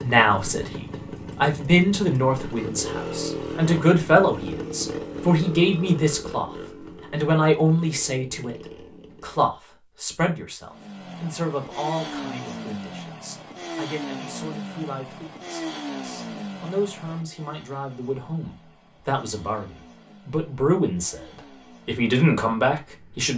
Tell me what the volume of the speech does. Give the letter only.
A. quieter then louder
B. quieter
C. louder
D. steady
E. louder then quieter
A.